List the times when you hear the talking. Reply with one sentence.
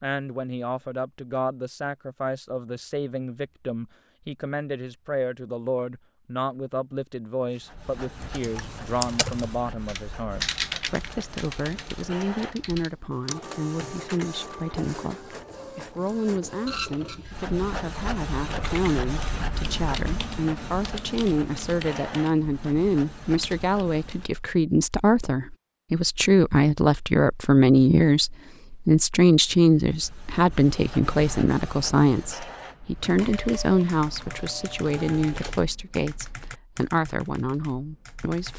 The talking can be heard from 0.0 to 38.5 s.